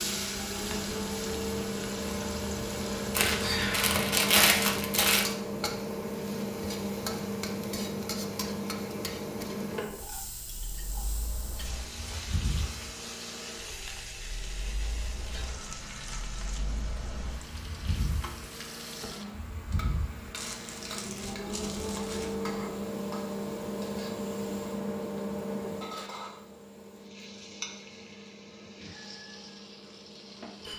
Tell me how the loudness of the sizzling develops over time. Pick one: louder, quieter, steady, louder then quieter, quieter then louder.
quieter.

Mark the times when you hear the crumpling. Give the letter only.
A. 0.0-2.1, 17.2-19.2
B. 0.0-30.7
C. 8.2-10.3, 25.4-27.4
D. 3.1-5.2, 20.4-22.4
D.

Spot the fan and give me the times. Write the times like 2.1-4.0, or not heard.
0.0-30.7.